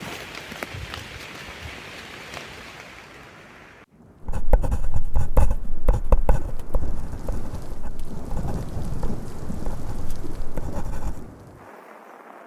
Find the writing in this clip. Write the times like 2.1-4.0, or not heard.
4.2-11.2.